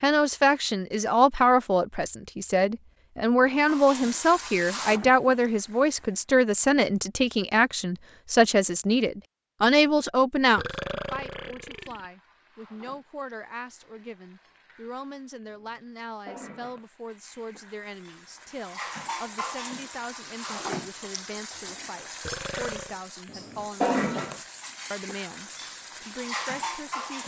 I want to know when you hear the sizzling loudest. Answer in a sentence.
The volume of the sizzling peaks at 24 seconds.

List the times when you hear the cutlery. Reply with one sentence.
You can't hear the cutlery here.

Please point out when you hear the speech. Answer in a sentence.
You can hear the speech from 0.0 to 27.2 s.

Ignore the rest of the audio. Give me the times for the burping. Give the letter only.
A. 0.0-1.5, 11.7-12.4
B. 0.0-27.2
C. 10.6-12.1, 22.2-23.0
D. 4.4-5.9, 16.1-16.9
C.